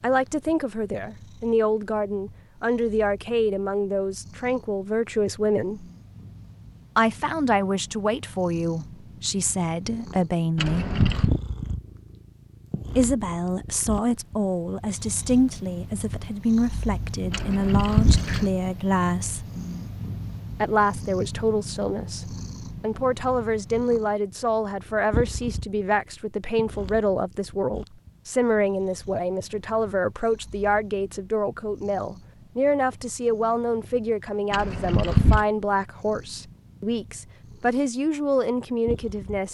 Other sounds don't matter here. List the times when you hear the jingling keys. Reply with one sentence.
You can hear the jingling keys from 10.6 to 11.4 s, from 17.3 to 18.5 s and from 34.5 to 35.5 s.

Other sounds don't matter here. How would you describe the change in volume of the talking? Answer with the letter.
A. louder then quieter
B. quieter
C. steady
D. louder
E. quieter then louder
C.